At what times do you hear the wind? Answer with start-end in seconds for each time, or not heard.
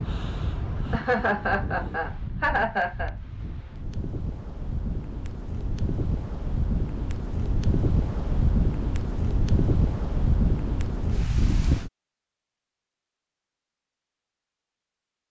0.0-11.9.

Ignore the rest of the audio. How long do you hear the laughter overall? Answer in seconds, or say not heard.
2 s.